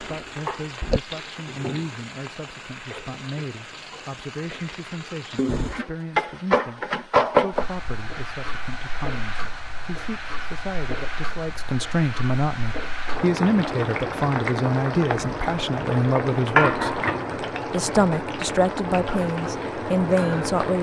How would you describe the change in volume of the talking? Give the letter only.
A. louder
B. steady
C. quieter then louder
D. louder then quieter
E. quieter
A.